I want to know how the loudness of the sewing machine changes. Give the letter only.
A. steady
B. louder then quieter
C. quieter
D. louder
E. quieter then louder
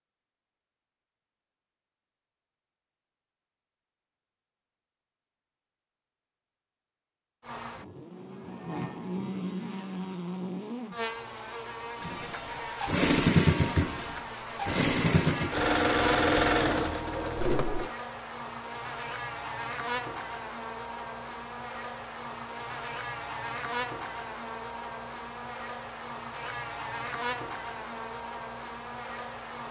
C.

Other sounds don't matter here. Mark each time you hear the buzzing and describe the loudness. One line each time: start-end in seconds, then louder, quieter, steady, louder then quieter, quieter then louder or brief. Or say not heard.
7.4-29.6 steady.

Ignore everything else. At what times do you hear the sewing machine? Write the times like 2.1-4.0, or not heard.
12.0-17.9.